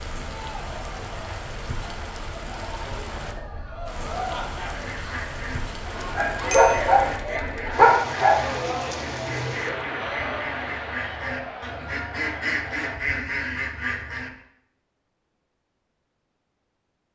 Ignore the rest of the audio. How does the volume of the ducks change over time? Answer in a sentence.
The loudness of the ducks goes up.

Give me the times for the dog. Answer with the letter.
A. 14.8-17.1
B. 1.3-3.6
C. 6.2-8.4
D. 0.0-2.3
C.